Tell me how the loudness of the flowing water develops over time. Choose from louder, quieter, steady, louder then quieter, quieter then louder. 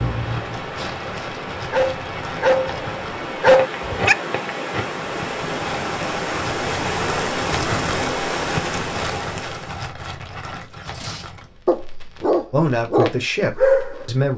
louder.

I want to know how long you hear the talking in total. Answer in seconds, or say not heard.
2 s.